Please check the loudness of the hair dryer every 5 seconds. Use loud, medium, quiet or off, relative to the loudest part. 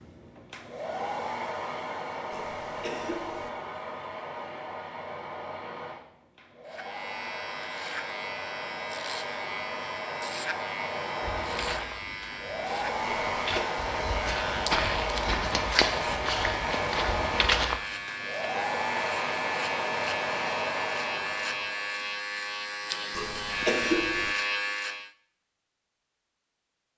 medium, medium, loud, loud, loud, off.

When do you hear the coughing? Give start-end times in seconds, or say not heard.
2.3-3.5, 13.0-13.7, 23.1-24.4.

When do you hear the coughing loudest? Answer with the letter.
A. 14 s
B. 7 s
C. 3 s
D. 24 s
D.